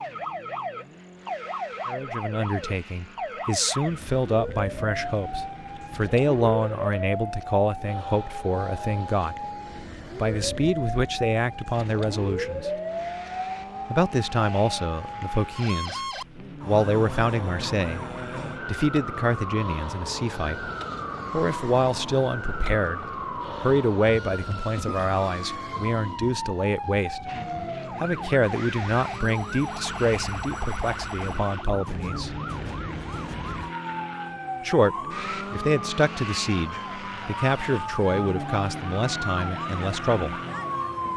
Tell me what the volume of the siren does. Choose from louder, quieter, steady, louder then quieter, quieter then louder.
steady.